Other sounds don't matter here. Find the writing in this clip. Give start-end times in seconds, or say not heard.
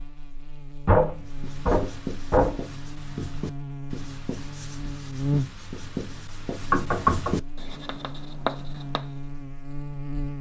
1.2-9.1.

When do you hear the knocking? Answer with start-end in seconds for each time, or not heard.
0.8-2.6, 6.7-7.4.